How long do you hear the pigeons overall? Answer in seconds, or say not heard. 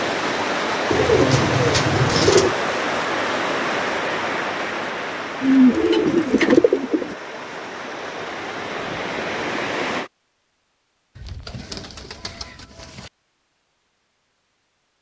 5 s.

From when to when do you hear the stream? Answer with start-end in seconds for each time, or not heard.
0.0-10.1.